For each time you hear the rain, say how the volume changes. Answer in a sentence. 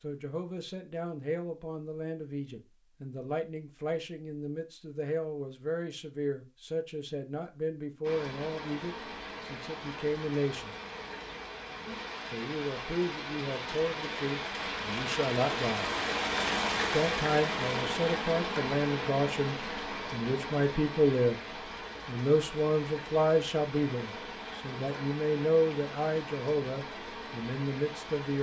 The rain can be heard from 8.0 to 28.3 s, getting louder then quieter.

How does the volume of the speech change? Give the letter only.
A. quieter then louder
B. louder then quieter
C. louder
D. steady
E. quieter
C.